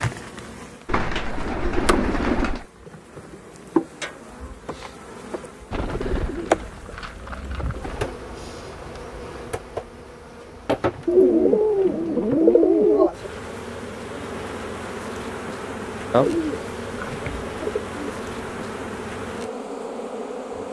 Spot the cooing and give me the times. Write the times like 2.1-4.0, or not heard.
0.8-2.6, 5.7-8.2, 11.1-13.1, 16.1-18.7.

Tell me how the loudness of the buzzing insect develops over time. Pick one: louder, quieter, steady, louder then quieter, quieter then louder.
steady.